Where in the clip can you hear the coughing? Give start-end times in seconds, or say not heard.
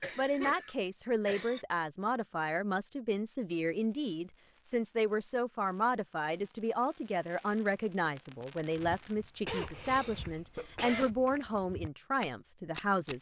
0.0-1.6, 9.4-11.1.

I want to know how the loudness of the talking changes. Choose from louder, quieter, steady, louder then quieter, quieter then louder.
steady.